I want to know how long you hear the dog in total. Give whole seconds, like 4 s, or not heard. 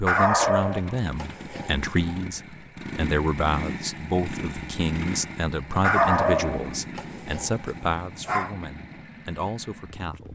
5 s.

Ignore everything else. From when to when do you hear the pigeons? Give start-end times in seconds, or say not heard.
not heard.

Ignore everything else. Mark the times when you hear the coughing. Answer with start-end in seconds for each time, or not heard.
not heard.